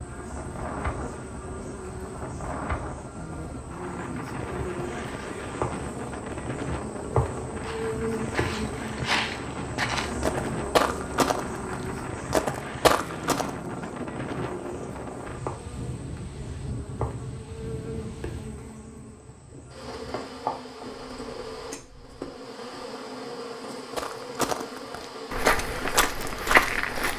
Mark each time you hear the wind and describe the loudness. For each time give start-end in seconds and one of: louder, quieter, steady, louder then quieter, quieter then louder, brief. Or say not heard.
0.0-22.3 quieter.